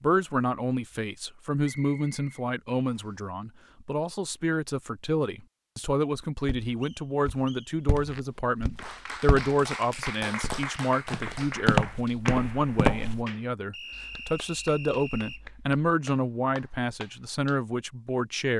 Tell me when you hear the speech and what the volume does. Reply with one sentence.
You can hear the speech from 0.0 to 18.5 s, at a steady volume.